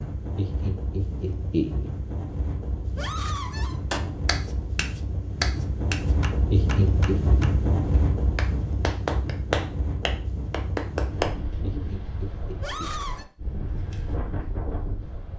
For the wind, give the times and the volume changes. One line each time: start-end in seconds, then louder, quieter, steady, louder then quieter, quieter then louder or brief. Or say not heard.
0.0-15.3 louder then quieter.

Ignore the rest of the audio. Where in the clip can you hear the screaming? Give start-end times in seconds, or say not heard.
3.0-3.8, 12.6-13.2.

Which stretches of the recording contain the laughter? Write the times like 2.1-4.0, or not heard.
0.3-1.9, 6.5-7.2, 11.6-12.9.